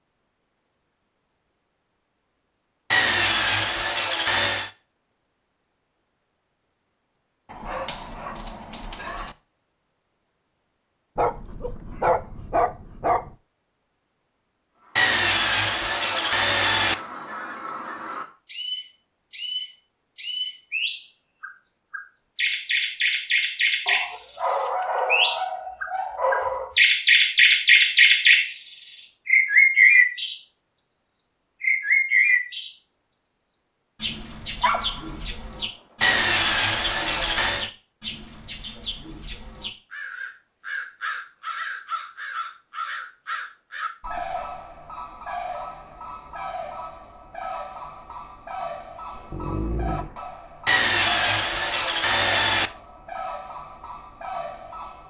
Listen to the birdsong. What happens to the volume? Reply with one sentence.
The loudness of the birdsong goes up, then down.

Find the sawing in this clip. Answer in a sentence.
The sawing can be heard from 2.9 to 4.7 s, from 14.9 to 16.9 s, from 36.0 to 37.7 s and from 50.6 to 52.7 s.